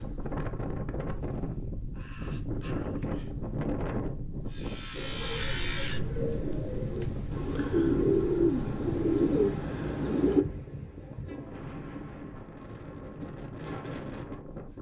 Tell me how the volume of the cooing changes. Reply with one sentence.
The volume of the cooing goes up.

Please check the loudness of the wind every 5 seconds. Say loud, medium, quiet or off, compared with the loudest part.
loud, loud, medium.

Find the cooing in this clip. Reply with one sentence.
The cooing can be heard from 5.0 to 10.4 s.